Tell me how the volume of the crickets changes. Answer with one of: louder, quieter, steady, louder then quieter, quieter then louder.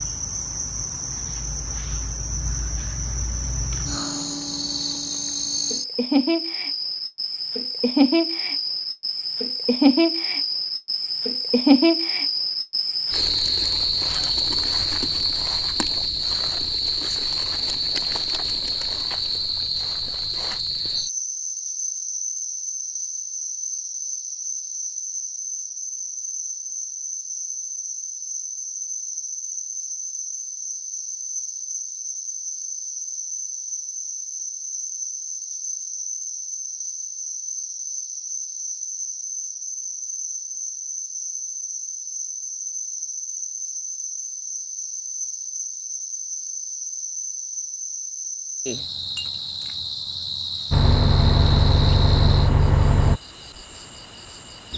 quieter.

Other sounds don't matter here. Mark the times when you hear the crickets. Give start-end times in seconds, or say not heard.
0.0-54.7.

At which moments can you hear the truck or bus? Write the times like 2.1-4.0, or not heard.
50.7-53.2.